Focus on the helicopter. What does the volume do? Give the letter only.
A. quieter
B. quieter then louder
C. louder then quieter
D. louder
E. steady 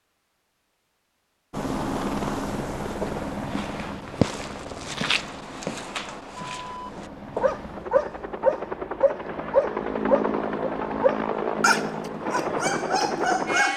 B.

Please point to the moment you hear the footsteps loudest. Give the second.
4 s.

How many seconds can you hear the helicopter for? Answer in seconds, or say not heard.
12 s.